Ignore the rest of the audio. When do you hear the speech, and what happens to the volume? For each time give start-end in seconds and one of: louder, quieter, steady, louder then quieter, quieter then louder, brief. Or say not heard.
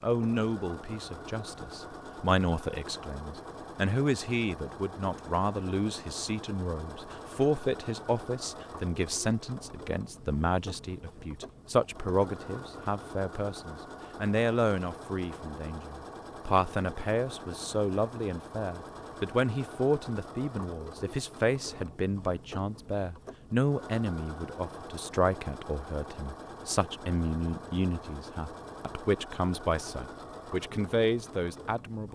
0.0-32.1 steady.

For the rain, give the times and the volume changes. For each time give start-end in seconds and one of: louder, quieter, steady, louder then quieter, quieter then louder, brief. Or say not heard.
not heard.